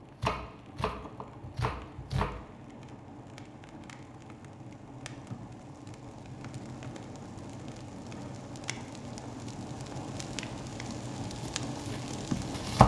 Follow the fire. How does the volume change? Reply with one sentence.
The volume of the fire goes up.